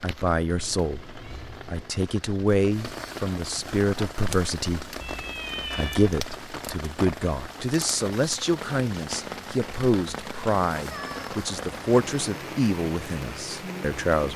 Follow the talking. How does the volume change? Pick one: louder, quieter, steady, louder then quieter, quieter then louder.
steady.